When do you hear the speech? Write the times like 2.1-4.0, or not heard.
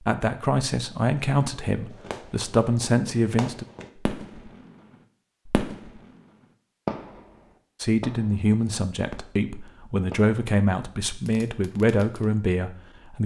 0.1-3.6, 7.8-13.2.